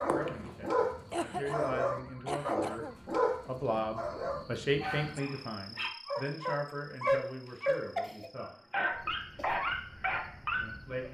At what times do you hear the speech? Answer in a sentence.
You can hear the speech from 0.0 to 2.9 s, from 3.5 to 8.6 s and from 10.5 to 11.0 s.